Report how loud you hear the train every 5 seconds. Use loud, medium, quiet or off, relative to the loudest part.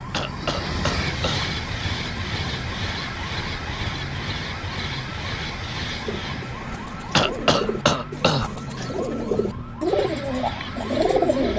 loud, medium, medium.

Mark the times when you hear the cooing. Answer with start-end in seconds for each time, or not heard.
6.0-11.5.